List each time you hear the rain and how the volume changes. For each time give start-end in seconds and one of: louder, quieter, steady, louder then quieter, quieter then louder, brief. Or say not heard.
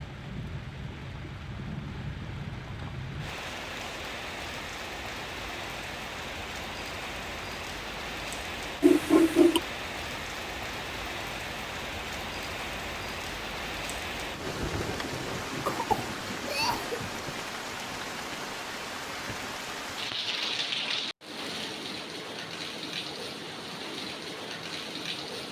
0.0-25.4 steady.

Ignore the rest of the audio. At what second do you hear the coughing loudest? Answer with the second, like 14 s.
9 s.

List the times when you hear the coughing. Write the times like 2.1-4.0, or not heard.
8.8-9.6, 15.7-17.0.